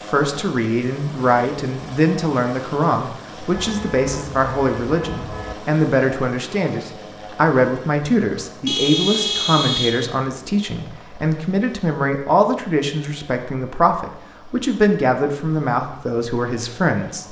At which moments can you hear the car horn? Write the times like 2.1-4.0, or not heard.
3.5-5.5, 8.7-10.2.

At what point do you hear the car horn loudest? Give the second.
9 s.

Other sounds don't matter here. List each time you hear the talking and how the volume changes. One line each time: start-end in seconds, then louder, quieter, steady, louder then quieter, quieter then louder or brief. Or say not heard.
0.1-17.2 steady.